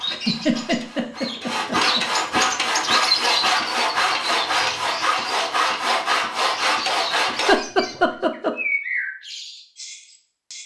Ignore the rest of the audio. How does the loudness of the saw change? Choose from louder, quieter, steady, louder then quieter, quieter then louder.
louder.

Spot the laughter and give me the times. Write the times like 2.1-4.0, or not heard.
0.1-2.0, 7.3-8.6.